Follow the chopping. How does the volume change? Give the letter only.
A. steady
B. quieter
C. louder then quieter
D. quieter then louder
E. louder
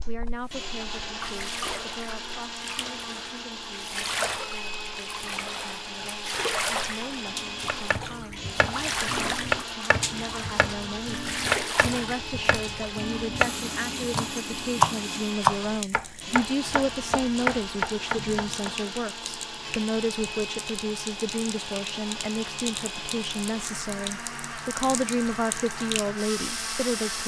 C.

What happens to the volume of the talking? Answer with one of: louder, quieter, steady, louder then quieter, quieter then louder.
louder.